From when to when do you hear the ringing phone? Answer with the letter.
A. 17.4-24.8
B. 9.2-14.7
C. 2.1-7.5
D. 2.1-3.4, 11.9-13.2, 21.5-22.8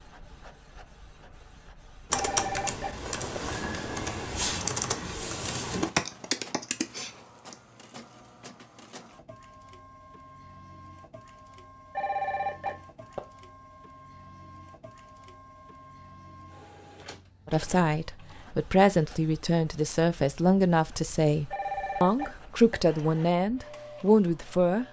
D.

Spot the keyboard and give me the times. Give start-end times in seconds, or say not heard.
2.1-7.5.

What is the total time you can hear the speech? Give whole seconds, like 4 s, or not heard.
7 s.